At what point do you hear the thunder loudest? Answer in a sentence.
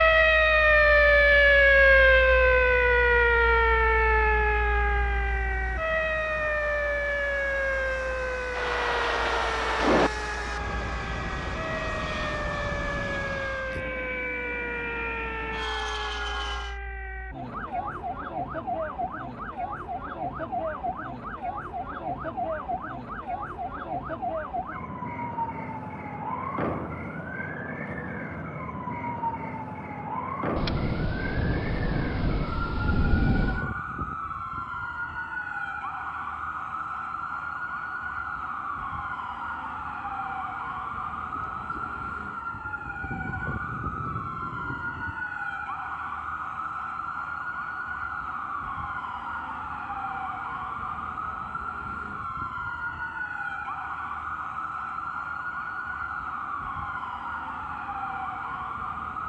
The volume of the thunder peaks at 10 seconds.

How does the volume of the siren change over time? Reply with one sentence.
The volume of the siren goes down.